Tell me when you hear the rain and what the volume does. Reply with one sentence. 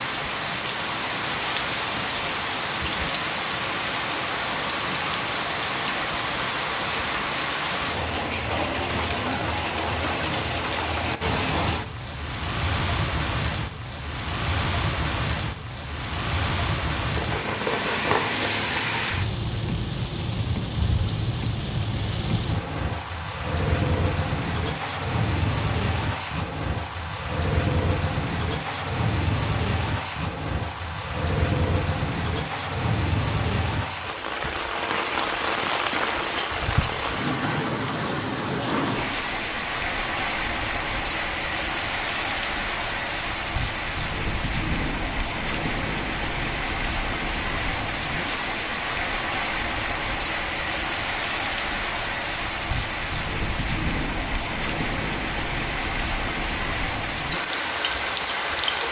The rain can be heard from 0.0 to 58.8 s, at a steady volume.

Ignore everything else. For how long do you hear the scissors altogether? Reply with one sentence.
You can hear the scissors for 2 seconds altogether.